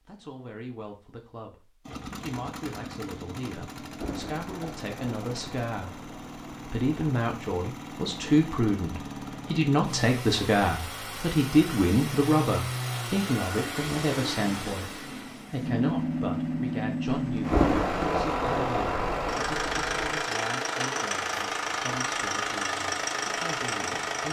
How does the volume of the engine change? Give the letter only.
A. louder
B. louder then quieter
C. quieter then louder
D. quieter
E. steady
A.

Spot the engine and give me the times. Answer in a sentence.
You can hear the engine from 1.9 to 24.2 s.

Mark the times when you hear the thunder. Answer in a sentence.
The thunder can be heard from 3.8 to 7.1 s and from 17.1 to 20.2 s.